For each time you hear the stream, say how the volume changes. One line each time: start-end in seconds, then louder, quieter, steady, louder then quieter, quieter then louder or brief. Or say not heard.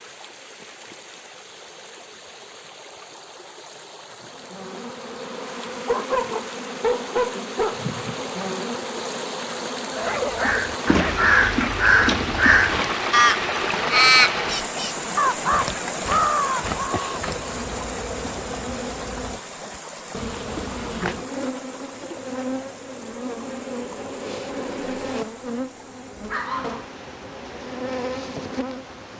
0.0-29.1 louder then quieter.